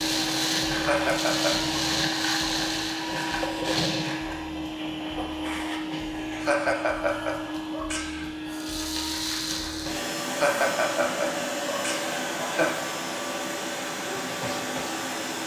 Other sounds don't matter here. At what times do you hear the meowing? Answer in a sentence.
The meowing can't be heard in this clip.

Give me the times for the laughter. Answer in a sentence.
You can hear the laughter from 0.8 to 1.6 s, from 6.4 to 8.3 s and from 10.3 to 12.8 s.